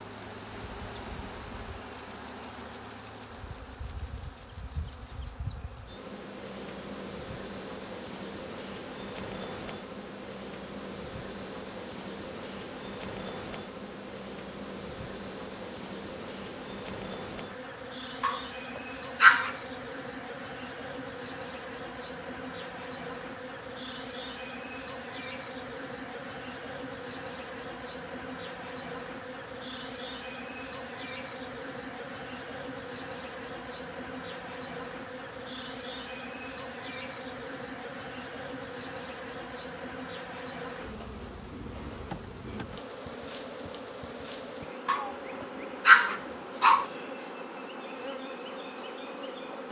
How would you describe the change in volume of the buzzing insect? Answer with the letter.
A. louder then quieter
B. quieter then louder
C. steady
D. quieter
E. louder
C.